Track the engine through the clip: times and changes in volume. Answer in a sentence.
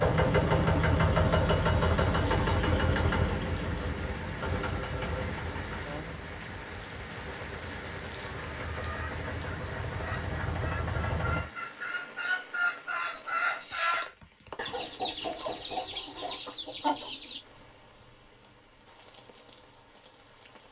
The engine can be heard from 0.0 to 11.5 s, getting quieter then louder.